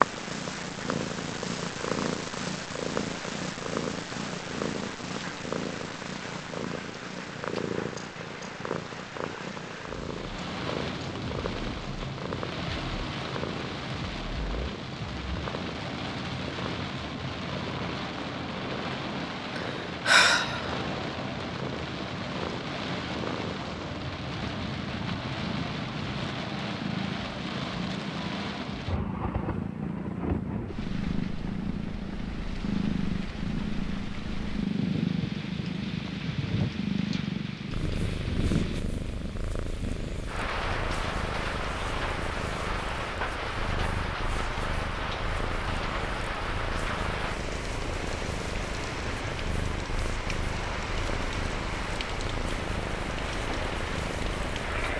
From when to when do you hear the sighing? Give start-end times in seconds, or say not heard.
19.6-20.8.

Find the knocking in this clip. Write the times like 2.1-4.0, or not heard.
not heard.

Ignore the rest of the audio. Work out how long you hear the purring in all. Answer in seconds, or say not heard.
55 s.